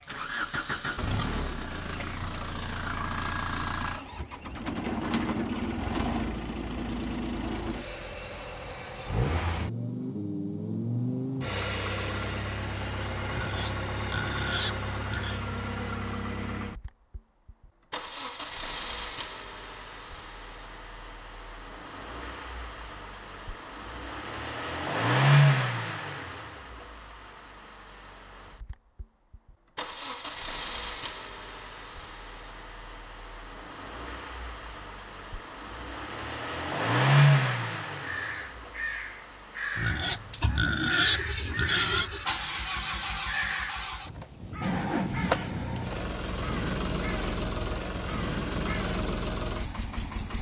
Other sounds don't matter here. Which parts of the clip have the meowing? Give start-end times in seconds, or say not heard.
not heard.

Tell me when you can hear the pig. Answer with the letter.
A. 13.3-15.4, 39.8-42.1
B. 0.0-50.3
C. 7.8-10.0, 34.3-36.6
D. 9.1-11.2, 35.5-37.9
A.